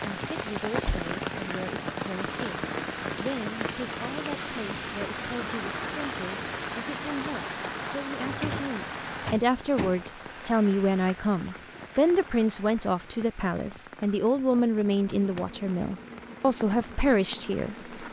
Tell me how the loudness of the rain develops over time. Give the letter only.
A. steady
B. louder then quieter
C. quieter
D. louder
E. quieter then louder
C.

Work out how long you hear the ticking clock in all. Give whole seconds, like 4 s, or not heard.
not heard.